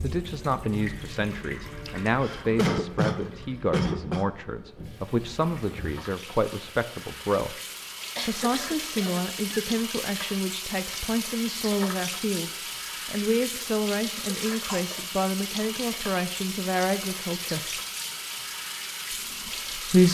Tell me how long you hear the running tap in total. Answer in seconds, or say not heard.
20 s.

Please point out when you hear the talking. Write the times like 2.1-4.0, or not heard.
0.0-7.5, 8.2-17.8, 19.1-20.0.